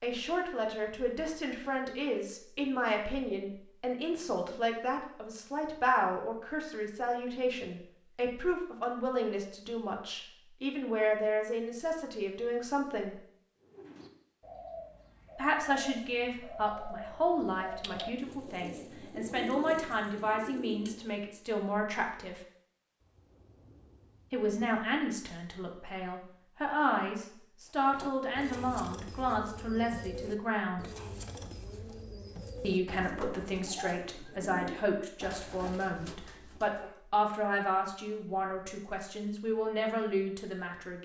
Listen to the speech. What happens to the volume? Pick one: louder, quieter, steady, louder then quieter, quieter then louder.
steady.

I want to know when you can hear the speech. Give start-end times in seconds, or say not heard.
0.0-13.2, 15.3-22.4, 24.3-30.9, 32.6-41.0.